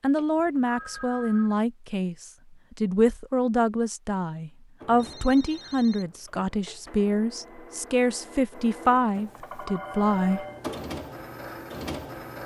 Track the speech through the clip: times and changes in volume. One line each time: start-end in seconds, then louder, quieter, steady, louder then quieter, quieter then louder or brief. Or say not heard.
0.0-10.4 steady.